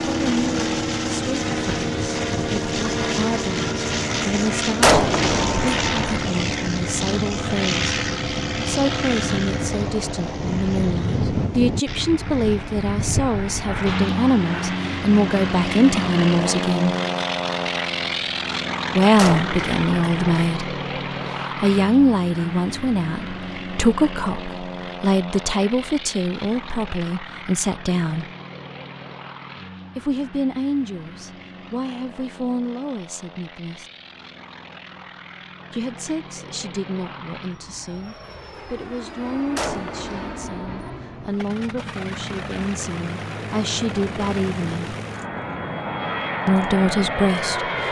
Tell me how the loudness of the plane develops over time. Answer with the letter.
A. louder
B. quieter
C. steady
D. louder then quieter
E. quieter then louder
E.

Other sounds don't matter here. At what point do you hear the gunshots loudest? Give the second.
5 s.